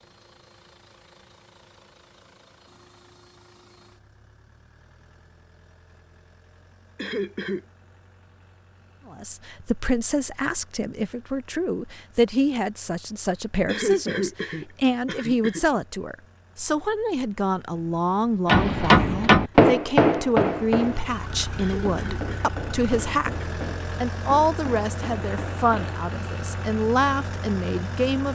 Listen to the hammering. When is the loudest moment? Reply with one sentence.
The volume of the hammering peaks at 19 seconds.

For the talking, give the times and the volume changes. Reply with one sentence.
The talking can be heard from 9.1 to 28.2 s, at a steady volume.